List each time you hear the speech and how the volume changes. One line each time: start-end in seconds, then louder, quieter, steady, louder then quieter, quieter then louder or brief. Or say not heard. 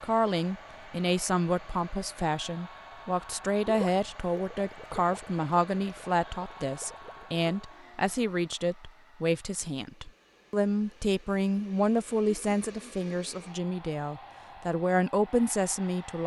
0.0-16.2 steady.